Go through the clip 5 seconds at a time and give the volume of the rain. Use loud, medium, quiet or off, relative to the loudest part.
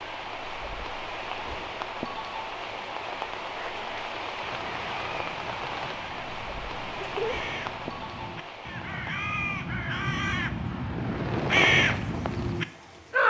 loud, loud, quiet.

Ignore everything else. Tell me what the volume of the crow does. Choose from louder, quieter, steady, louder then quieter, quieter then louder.
louder.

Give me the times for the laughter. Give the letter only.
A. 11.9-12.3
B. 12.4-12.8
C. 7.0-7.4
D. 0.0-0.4
C.